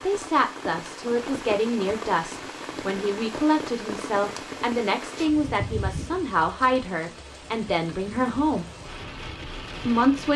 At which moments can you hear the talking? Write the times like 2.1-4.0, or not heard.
0.0-8.7, 9.8-10.3.